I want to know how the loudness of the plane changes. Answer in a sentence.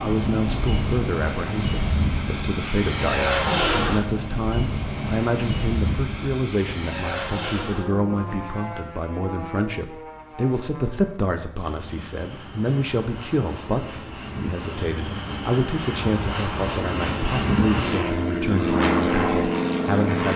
The loudness of the plane goes down, then up.